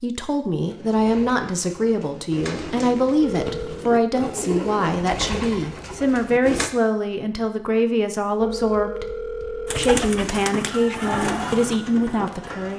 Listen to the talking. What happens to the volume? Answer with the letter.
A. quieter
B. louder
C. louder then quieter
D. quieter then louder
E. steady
E.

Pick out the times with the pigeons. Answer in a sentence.
You can hear the pigeons from 0.6 to 6.7 s and from 9.7 to 12.7 s.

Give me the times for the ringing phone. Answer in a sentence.
The ringing phone can be heard from 3.2 to 3.9 s and from 8.4 to 9.9 s.